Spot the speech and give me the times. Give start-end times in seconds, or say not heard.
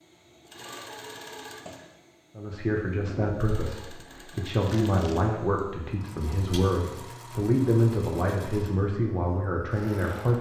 2.4-10.3.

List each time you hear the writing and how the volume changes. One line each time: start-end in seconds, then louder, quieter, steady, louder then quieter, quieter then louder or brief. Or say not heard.
not heard.